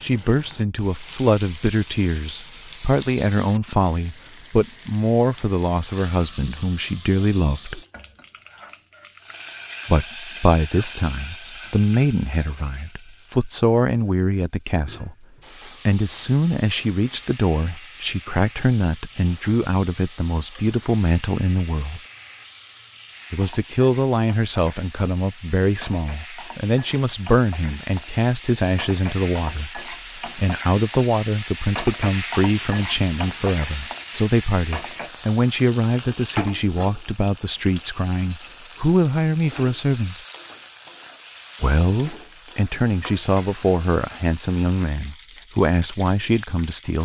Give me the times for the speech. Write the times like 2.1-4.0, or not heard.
0.0-7.8, 9.8-15.2, 15.8-22.0, 23.3-40.1, 41.6-46.9.